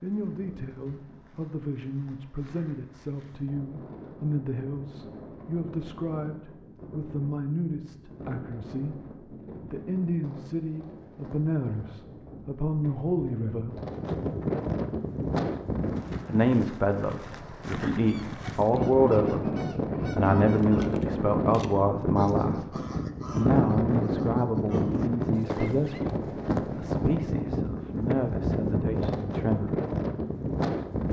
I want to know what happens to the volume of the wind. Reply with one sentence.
The loudness of the wind goes up.